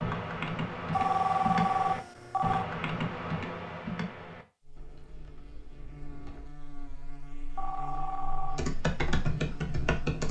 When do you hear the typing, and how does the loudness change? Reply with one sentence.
The typing can be heard from 0.0 to 6.5 s, getting quieter; and briefly from 8.4 to 10.2 s.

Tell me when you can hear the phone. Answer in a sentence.
The phone can be heard from 0.9 to 2.7 s and from 7.5 to 8.6 s.